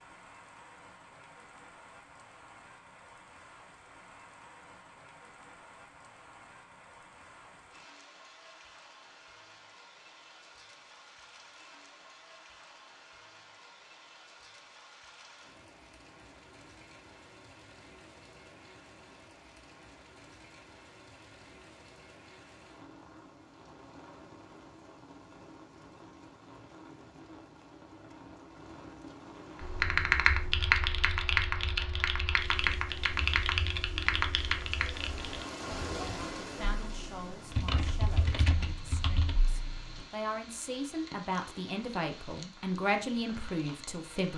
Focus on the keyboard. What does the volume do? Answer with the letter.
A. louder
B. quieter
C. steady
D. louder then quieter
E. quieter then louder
B.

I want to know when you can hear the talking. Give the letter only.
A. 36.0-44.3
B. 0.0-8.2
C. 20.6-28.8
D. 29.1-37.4
A.